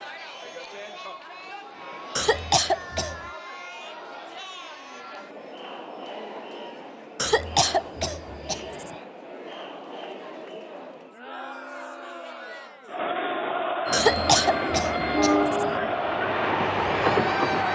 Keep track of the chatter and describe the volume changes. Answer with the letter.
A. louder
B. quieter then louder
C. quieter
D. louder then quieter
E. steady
A.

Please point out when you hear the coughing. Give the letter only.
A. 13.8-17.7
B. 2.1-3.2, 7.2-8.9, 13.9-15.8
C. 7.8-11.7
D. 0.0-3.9
B.